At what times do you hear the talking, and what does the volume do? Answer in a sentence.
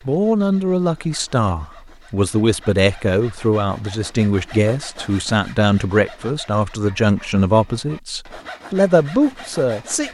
You can hear the talking from 0.1 to 10.0 s, at a steady volume.